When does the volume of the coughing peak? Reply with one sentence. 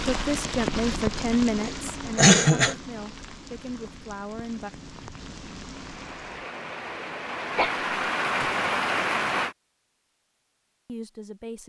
The volume of the coughing peaks at 2 seconds.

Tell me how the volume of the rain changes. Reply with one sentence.
The loudness of the rain goes down, then up.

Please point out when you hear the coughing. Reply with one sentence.
You can hear the coughing from 1.6 to 2.8 s and from 7.5 to 8.5 s.